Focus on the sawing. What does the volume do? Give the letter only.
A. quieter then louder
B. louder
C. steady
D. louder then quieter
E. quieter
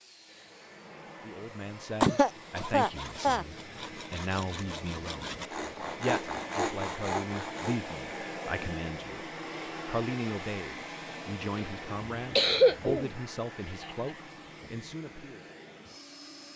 B.